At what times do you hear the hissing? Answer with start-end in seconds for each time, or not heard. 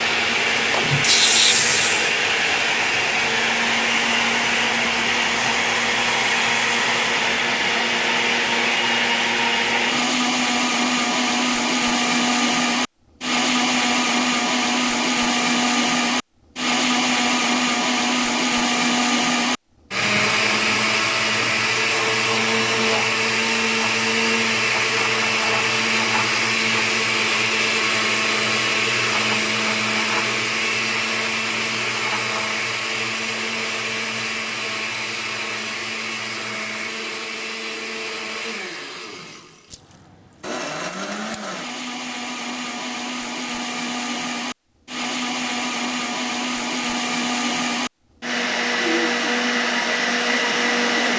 0.1-2.1.